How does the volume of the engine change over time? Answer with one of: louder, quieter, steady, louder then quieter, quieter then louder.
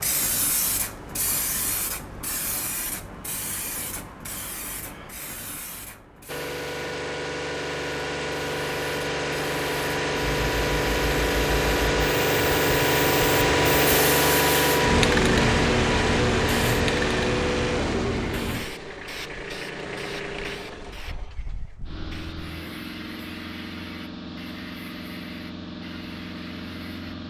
louder then quieter.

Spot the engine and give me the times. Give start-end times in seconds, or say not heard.
6.2-27.2.